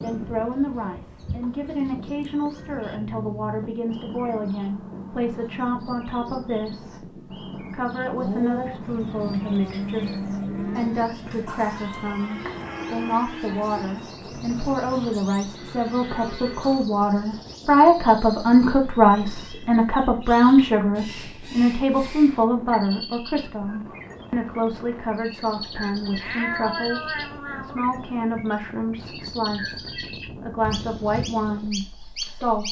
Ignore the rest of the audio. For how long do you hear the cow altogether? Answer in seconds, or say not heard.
8 s.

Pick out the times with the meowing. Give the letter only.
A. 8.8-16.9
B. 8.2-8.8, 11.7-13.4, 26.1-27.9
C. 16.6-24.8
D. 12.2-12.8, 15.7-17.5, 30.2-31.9
B.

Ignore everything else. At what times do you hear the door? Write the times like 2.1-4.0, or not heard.
not heard.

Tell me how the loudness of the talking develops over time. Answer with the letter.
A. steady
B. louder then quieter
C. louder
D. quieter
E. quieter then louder
B.